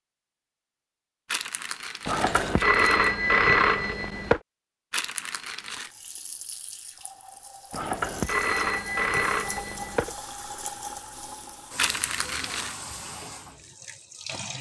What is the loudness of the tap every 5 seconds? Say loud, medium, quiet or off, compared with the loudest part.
off, loud, loud.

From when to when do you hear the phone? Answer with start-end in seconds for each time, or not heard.
2.0-4.4, 7.7-10.2.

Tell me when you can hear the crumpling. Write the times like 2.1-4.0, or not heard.
1.2-3.1, 4.9-5.9, 11.8-12.8.